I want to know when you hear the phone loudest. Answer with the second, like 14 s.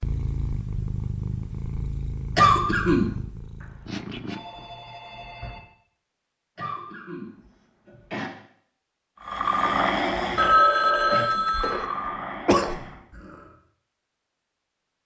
11 s.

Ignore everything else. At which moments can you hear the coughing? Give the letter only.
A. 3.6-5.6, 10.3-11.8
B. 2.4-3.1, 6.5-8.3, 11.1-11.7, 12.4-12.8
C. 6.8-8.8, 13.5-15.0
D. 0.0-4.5
B.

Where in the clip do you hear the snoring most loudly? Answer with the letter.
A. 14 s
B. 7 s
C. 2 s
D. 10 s
D.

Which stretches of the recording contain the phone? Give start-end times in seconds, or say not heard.
3.6-5.6, 10.3-11.8.